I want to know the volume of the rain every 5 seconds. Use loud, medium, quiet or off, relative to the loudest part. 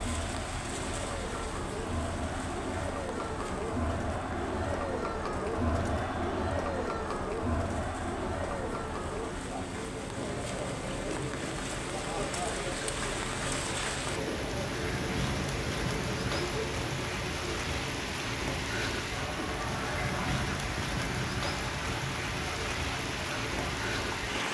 medium, medium, loud, loud, loud.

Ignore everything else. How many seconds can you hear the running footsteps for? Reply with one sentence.
You can't hear the running footsteps here.